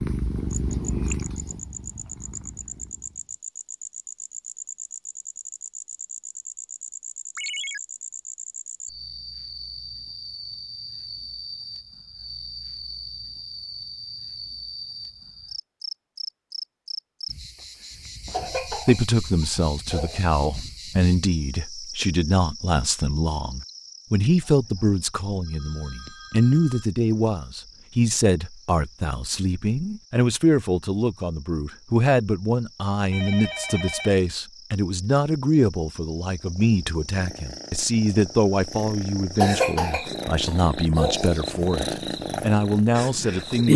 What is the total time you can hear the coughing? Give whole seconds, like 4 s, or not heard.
4 s.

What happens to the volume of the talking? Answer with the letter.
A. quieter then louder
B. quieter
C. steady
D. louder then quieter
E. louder
C.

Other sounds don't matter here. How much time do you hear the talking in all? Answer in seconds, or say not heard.
25 s.